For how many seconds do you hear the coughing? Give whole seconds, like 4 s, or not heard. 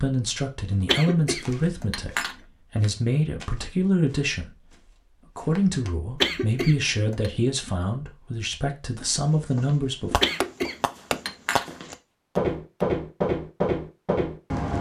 4 s.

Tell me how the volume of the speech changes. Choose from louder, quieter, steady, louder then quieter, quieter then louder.
steady.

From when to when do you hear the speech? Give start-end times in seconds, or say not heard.
0.0-4.5, 5.3-10.2.